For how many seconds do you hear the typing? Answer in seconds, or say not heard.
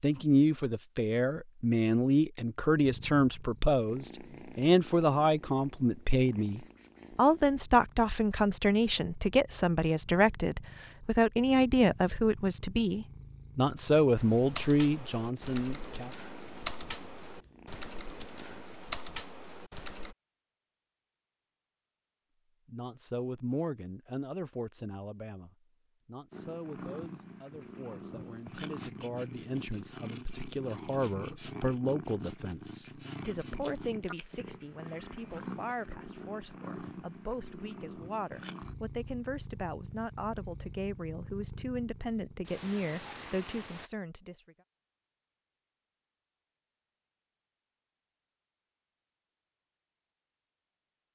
6 s.